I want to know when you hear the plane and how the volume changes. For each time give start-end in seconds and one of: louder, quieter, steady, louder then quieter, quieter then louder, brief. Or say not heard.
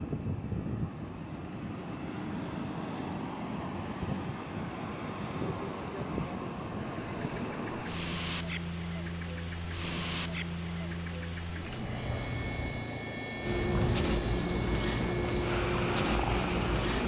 0.0-17.0 steady.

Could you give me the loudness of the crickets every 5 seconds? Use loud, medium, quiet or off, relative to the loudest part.
off, quiet, medium, loud.